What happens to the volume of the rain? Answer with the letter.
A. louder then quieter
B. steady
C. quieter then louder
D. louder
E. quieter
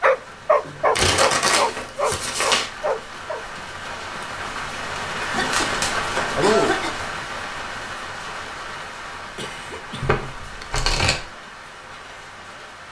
A.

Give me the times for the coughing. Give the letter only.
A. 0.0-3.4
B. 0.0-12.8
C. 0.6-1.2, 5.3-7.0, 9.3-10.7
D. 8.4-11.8
C.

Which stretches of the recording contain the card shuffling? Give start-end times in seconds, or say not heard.
0.9-2.7, 5.5-6.4, 10.0-11.3.